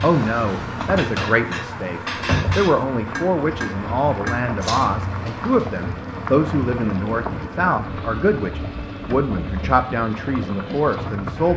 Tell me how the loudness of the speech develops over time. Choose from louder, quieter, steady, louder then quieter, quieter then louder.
steady.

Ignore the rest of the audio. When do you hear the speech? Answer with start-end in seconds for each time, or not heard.
0.0-11.5.